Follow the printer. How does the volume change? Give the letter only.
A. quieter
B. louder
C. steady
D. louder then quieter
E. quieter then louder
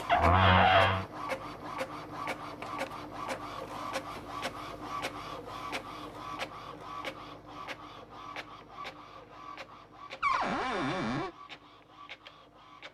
A.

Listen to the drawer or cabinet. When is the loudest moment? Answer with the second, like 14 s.
1 s.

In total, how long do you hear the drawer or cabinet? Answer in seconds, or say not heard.
2 s.